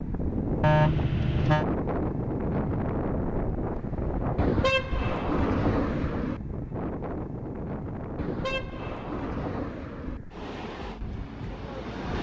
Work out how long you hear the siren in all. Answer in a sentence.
The siren can't be heard in this clip.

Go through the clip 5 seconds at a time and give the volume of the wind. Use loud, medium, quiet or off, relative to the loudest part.
loud, medium, medium.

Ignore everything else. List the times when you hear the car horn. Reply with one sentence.
The car horn can be heard from 0.6 to 1.6 s, from 4.3 to 6.4 s and from 8.2 to 10.2 s.